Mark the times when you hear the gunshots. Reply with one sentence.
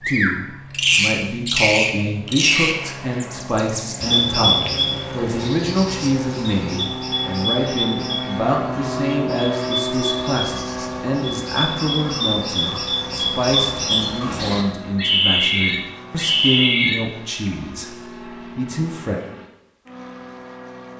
You can't hear the gunshots here.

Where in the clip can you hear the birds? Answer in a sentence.
You can hear the birds from 0.0 to 17.5 s.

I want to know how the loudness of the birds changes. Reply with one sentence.
The loudness of the birds goes down, then up.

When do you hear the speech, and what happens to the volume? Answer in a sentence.
You can hear the speech from 0.1 to 19.2 s, at a steady volume.